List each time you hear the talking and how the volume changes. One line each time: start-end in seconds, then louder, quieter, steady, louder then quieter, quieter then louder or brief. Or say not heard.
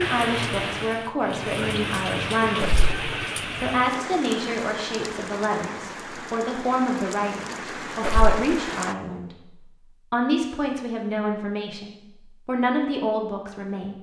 0.0-13.9 steady.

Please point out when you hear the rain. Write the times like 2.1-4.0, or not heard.
0.0-8.9.